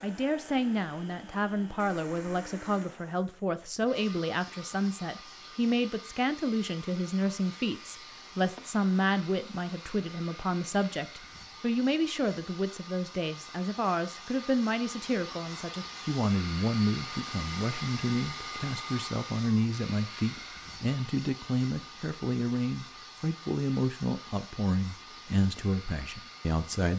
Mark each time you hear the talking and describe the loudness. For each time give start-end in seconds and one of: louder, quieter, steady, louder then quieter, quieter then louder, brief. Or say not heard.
0.0-26.9 steady.